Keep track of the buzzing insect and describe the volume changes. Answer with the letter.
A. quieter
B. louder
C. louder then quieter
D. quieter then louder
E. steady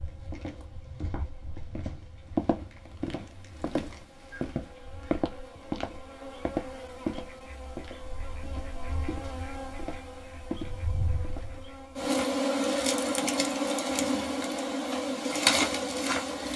B.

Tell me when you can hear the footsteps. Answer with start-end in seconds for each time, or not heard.
0.1-11.7.